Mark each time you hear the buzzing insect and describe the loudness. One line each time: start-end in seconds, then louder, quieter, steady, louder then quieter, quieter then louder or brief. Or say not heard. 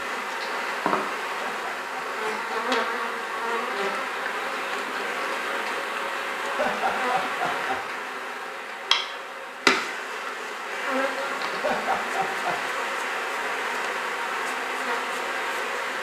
0.0-15.9 steady.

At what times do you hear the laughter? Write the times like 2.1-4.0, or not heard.
1.4-2.5, 6.5-7.8, 11.6-12.8.